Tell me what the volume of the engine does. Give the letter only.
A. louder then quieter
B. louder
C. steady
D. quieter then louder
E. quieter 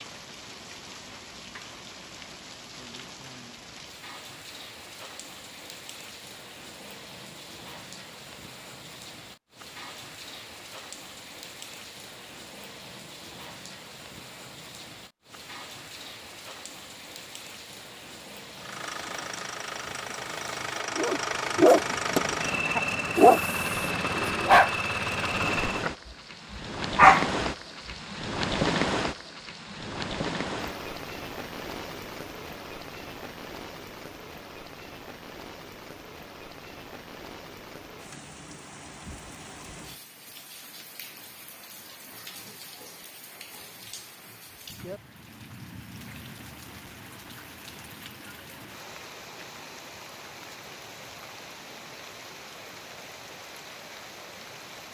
B.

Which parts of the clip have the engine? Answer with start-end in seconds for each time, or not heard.
18.6-25.9.